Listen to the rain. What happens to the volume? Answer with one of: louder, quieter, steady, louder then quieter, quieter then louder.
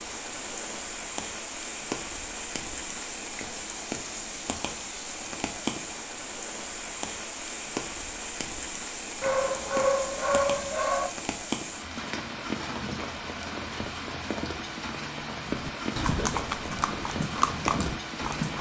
steady.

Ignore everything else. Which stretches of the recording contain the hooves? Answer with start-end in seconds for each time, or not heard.
15.7-18.5.